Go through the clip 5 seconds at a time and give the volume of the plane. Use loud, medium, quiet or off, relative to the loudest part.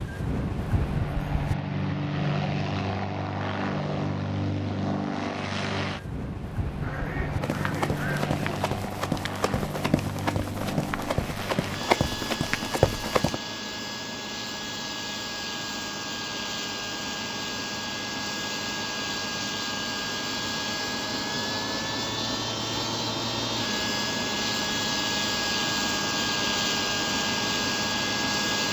loud, medium, medium, medium, loud, loud.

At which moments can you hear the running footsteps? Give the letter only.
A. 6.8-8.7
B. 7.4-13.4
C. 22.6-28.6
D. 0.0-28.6
B.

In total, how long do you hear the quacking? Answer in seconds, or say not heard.
2 s.